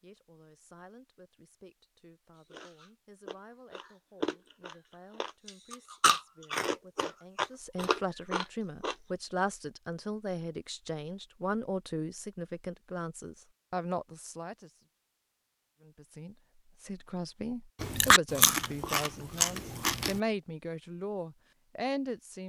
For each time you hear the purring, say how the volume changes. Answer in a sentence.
You can't hear the purring here.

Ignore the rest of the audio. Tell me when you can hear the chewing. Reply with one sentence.
You can hear the chewing from 2.5 to 8.9 s and from 17.8 to 20.2 s.